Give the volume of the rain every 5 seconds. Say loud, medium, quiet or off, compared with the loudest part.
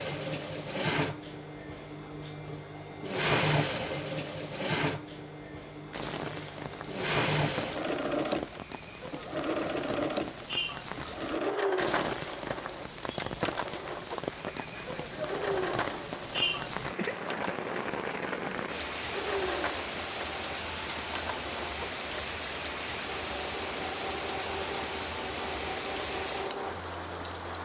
off, medium, loud, loud, loud, loud.